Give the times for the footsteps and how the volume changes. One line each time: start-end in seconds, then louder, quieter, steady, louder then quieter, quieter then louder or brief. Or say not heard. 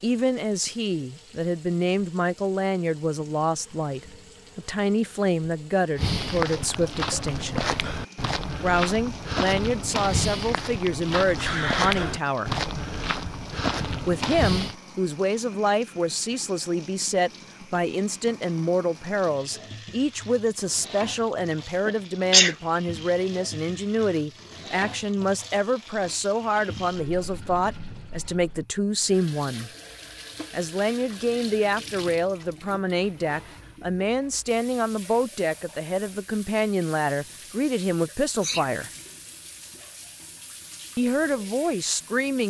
6.0-14.8 steady.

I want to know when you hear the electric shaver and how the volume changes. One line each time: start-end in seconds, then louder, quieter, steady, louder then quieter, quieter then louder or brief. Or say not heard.
not heard.